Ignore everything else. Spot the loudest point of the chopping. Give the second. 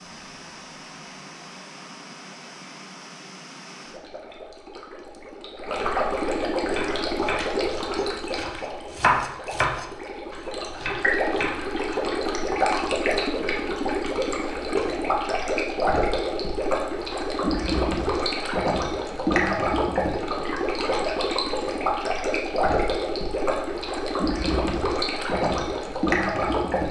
9 s.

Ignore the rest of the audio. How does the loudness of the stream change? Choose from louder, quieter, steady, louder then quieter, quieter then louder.
louder.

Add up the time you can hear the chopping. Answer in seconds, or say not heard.
5 s.